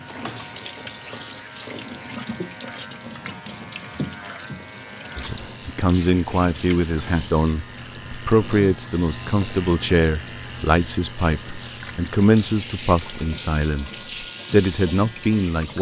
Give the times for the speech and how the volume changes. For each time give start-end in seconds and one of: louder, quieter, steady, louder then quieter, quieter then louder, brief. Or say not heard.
5.2-15.7 steady.